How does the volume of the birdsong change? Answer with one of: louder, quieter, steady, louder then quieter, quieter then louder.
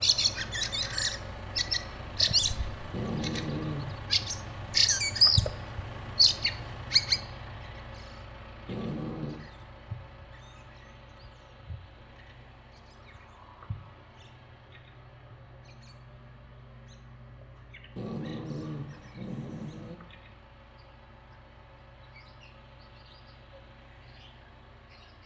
quieter.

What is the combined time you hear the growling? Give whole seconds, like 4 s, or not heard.
4 s.